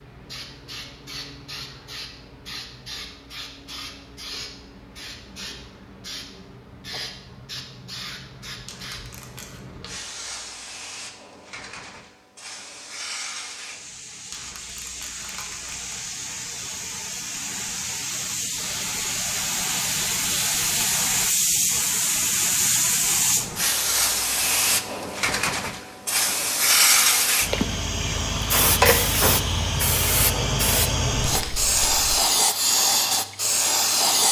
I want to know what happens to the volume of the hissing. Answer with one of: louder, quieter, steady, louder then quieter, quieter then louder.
louder.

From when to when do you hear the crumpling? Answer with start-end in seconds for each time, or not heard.
8.7-9.6, 14.3-15.9, 31.2-32.2.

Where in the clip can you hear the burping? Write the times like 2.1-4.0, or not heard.
not heard.